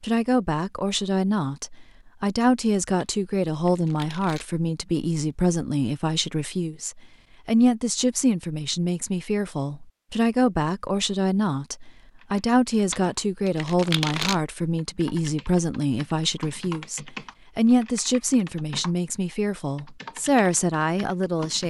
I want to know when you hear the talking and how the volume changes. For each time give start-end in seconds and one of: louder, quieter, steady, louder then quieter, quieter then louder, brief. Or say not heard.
0.0-21.6 steady.